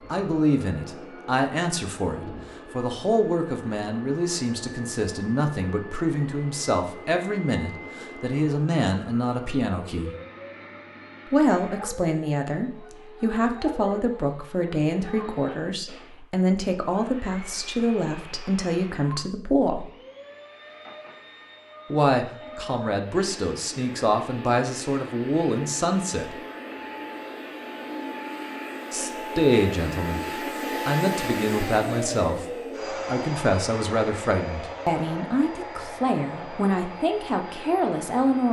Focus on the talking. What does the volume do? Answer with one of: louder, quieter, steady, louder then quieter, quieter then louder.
steady.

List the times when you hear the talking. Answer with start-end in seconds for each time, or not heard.
0.1-10.1, 11.2-19.9, 21.9-26.4, 28.9-38.4.